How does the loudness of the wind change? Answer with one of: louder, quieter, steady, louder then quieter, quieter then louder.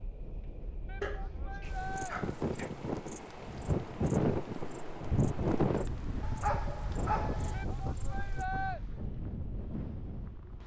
louder then quieter.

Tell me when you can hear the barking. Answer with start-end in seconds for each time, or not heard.
1.0-2.7, 6.2-7.7.